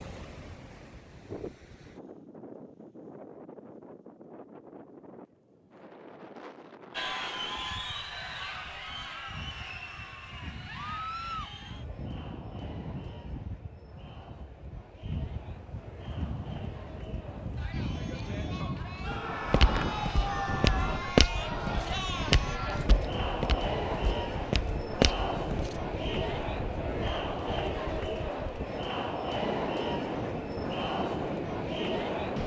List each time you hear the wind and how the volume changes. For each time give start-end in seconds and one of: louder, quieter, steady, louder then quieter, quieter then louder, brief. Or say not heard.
0.0-32.4 louder.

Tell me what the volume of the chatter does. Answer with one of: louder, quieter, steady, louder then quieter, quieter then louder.
quieter then louder.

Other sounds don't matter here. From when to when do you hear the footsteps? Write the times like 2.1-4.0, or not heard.
19.4-25.8.